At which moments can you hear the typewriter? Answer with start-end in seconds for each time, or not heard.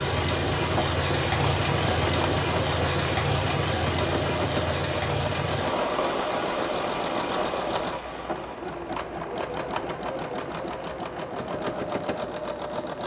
not heard.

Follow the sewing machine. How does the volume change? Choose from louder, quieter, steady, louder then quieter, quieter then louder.
steady.